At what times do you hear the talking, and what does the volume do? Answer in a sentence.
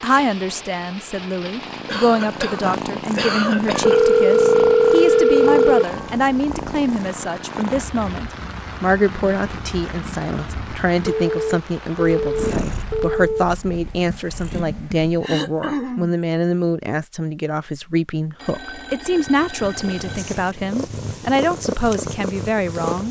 You can hear the talking from 0.0 to 23.0 s, at a steady volume.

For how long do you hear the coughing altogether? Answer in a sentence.
You can hear the coughing for 3 seconds altogether.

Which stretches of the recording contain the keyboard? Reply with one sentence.
You can't hear the keyboard here.